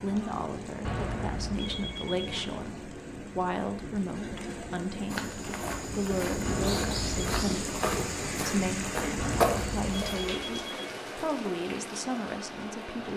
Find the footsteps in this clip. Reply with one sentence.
The footsteps can be heard from 5.0 to 10.3 s.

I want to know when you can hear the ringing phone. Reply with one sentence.
You can hear the ringing phone from 0.8 to 2.5 s, from 6.5 to 7.2 s and from 9.2 to 10.9 s.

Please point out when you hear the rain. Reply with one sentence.
The rain can be heard from 0.0 to 13.1 s.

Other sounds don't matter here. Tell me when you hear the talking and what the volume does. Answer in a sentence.
You can hear the talking from 0.0 to 13.1 s, at a steady volume.